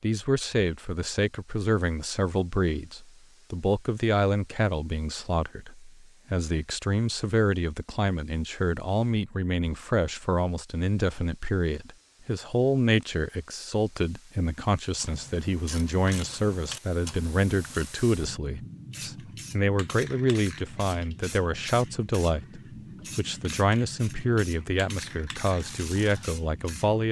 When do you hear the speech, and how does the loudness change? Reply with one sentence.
The speech can be heard from 0.0 to 27.0 s, at a steady volume.